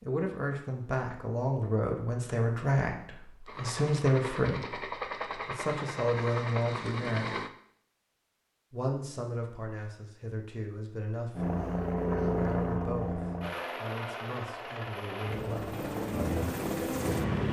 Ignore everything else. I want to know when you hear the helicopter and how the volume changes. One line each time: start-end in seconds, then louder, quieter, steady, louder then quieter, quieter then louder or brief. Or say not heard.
3.5-7.5 steady
11.3-17.4 quieter then louder.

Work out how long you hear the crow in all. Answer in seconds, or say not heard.
not heard.